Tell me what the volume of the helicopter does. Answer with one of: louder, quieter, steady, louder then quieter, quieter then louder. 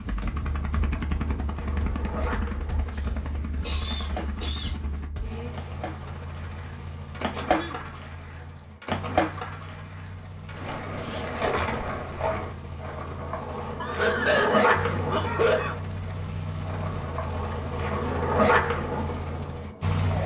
quieter then louder.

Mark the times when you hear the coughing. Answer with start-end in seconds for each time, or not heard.
2.9-4.8, 7.3-7.8, 13.8-15.8.